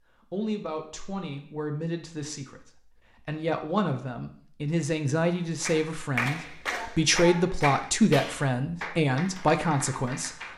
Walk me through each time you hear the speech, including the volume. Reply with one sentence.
The speech can be heard from 0.3 to 10.5 s, getting louder.